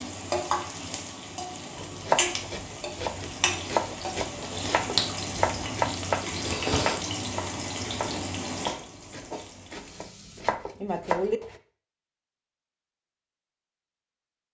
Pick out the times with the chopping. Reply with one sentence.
You can hear the chopping from 1.8 to 11.6 s.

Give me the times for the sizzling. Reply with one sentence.
The sizzling can be heard from 0.0 to 10.4 s.